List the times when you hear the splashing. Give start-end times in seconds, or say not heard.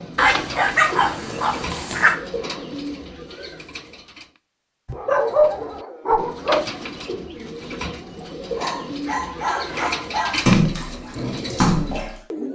9.7-12.2.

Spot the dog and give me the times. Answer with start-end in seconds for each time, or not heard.
0.1-2.1, 4.8-6.7, 8.6-10.6.